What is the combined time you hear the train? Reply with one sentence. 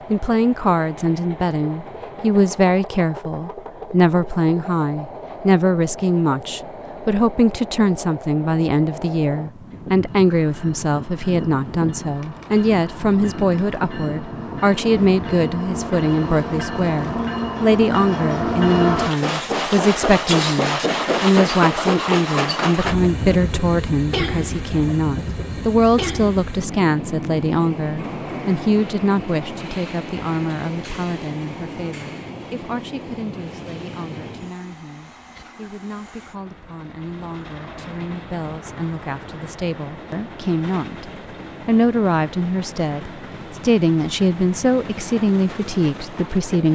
You can hear the train for 47 seconds altogether.